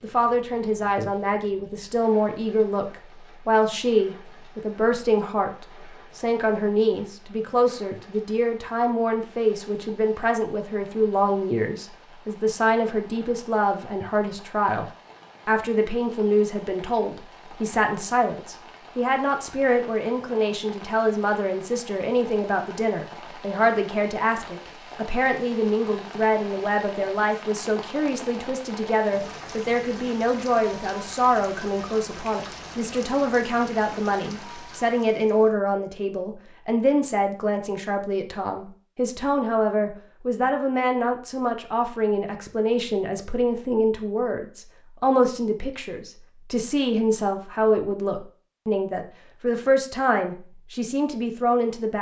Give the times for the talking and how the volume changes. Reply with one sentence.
The talking can be heard from 0.0 to 14.8 s, at a steady volume; and from 15.4 to 51.9 s, at a steady volume.